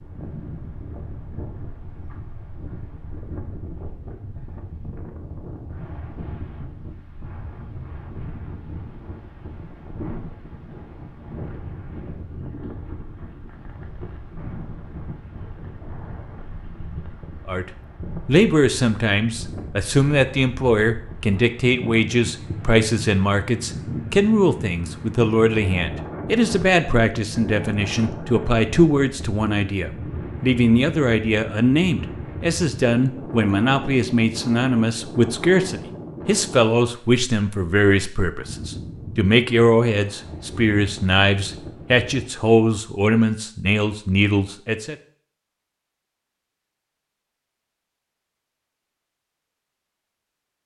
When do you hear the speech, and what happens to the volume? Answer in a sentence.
You can hear the speech from 17.4 to 45.0 s, at a steady volume.